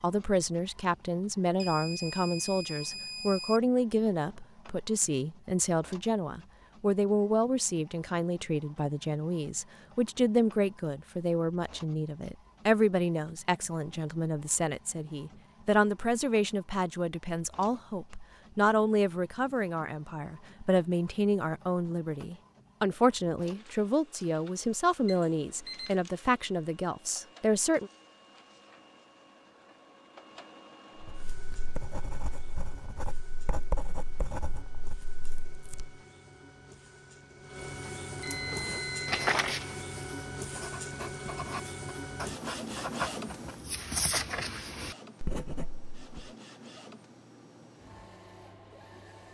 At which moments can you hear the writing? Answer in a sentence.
You can hear the writing from 31.0 to 35.9 s and from 38.3 to 46.3 s.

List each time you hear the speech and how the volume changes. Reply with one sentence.
You can hear the speech from 0.0 to 27.9 s, at a steady volume.